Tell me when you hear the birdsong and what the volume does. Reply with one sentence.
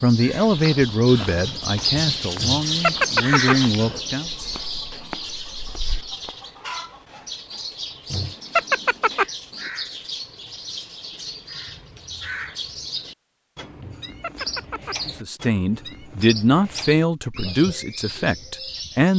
The birdsong can be heard from 0.0 to 19.1 s, getting quieter.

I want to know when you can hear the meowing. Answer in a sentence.
You can hear the meowing from 2.4 to 3.5 s, from 8.1 to 9.2 s and from 13.8 to 14.9 s.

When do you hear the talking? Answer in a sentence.
You can hear the talking from 0.0 to 4.3 s and from 15.1 to 19.1 s.